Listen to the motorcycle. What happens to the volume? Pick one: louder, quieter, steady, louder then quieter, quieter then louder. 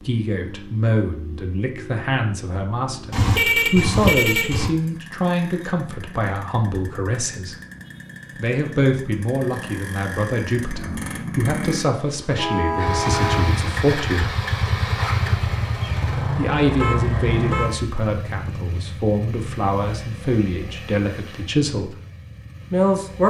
louder then quieter.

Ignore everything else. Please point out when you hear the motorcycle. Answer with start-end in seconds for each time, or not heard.
0.0-23.2.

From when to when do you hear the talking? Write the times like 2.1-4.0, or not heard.
0.1-7.5, 8.3-14.3, 16.4-21.9, 22.7-23.2.